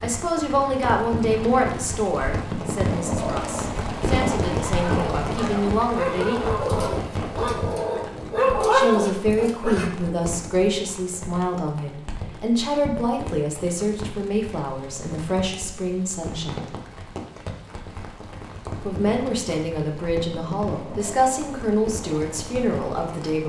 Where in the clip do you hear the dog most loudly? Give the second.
9 s.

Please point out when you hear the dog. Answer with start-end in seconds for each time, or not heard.
4.6-9.9.